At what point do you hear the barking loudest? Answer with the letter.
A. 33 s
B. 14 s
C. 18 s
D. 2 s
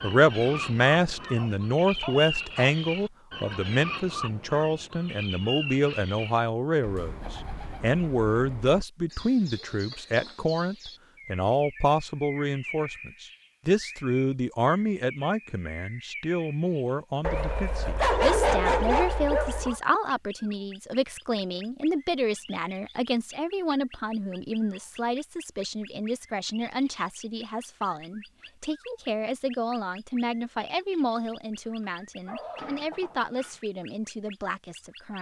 C.